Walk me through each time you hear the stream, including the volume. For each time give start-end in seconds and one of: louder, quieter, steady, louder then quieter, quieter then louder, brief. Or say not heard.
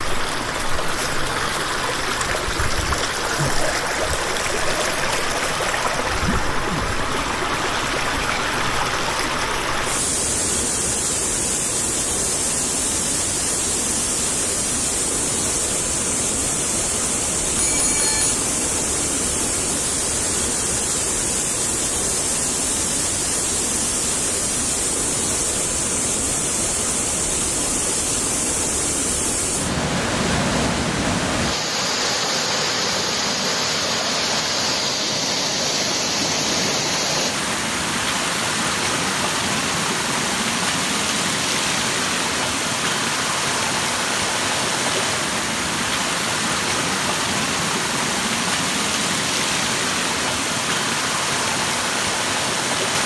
0.0-53.0 steady.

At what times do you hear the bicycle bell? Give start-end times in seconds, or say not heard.
17.6-18.4.